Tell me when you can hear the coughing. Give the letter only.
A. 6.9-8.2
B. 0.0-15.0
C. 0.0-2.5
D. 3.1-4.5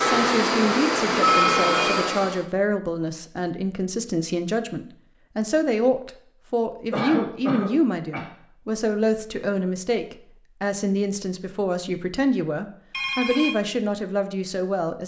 A.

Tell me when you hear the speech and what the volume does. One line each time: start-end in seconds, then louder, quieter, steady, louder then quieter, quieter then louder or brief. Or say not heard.
0.0-15.0 steady.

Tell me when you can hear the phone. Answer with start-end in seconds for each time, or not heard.
1.2-2.0, 12.9-13.6.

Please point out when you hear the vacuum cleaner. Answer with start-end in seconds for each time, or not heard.
0.0-2.5.